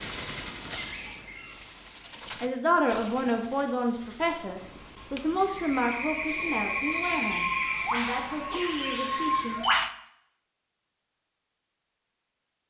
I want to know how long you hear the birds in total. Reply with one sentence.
The birds can be heard for 10 seconds in total.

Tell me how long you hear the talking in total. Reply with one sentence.
The talking can be heard for 7 seconds in total.